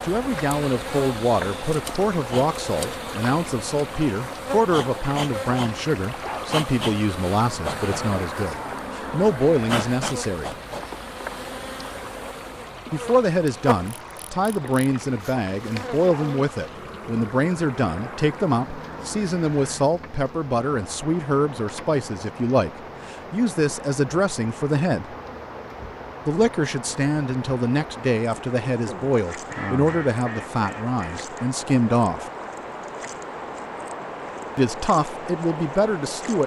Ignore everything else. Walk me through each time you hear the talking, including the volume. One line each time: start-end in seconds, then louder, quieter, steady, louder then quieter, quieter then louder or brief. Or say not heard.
0.0-10.6 steady
12.9-25.1 steady
26.2-32.2 steady
34.5-36.4 brief.